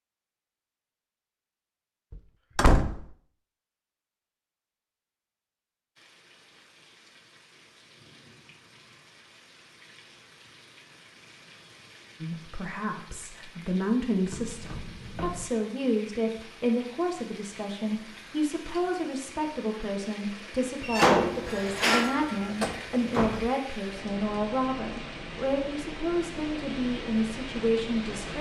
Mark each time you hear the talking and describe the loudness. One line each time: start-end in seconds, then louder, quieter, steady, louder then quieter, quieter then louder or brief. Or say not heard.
12.2-28.3 steady.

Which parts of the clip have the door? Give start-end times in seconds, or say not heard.
2.1-3.1, 14.3-15.5, 20.8-23.5.